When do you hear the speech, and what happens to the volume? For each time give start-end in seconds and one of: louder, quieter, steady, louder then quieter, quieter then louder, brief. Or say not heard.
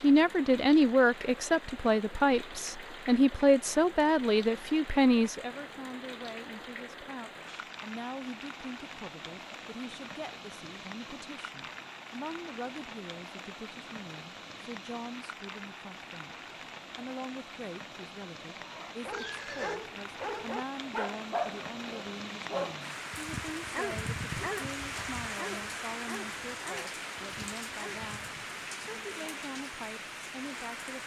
0.0-31.0 quieter.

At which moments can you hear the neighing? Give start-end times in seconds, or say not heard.
19.1-19.8.